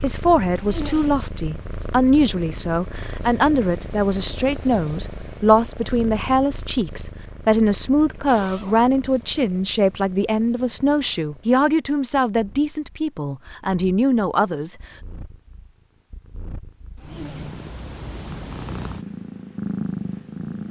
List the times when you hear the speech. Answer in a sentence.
You can hear the speech from 0.0 to 14.8 s.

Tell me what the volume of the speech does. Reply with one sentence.
The volume of the speech stays about the same.